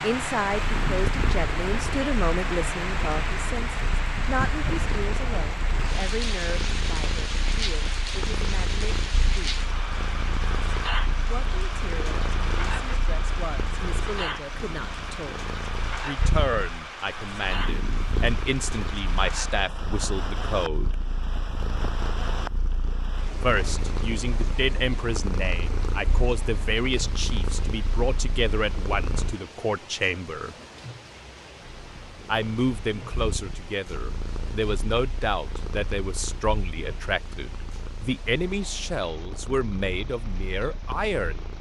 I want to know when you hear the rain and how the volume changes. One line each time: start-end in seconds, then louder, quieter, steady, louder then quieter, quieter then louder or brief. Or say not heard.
0.0-41.5 quieter.